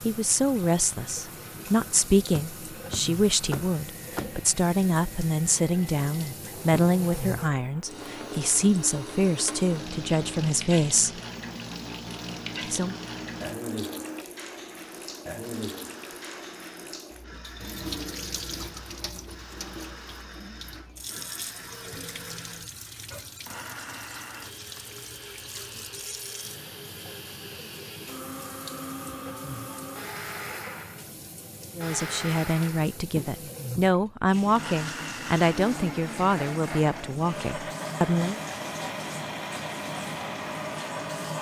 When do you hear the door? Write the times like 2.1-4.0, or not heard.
2.3-4.5.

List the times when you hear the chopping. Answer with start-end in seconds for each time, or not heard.
not heard.